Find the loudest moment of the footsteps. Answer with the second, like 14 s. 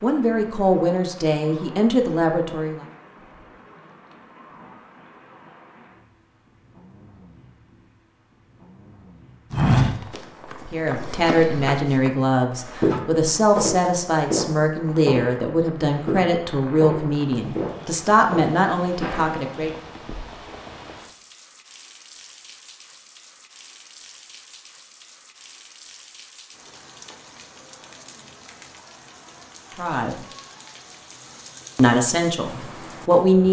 10 s.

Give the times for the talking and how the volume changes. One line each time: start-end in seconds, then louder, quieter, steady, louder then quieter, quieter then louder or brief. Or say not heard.
0.0-2.9 brief
10.7-19.7 steady
29.8-30.2 brief
31.8-33.4 brief.